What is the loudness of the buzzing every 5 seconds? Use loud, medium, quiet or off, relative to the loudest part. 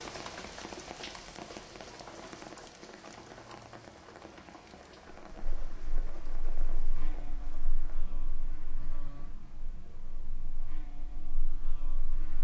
off, loud, loud.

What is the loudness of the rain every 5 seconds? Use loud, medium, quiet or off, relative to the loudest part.
loud, medium, quiet.